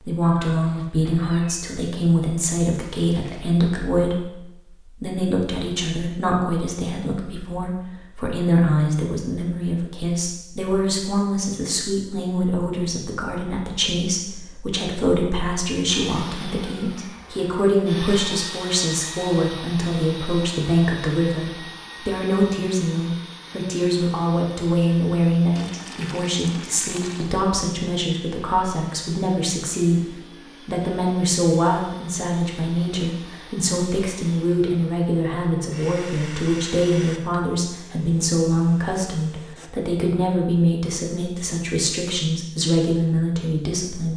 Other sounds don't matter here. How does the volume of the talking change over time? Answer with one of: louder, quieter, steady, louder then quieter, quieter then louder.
steady.